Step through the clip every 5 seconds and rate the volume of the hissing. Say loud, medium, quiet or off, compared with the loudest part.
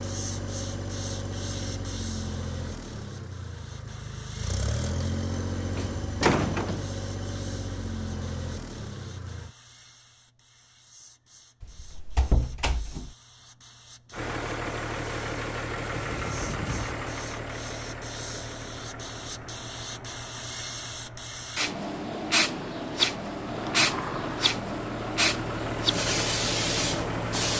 quiet, quiet, quiet, quiet, loud, loud.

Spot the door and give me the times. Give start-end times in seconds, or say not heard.
5.8-6.8, 11.6-13.2, 23.4-24.6.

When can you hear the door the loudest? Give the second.
6 s.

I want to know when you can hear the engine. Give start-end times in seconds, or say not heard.
0.0-9.5, 14.1-27.5.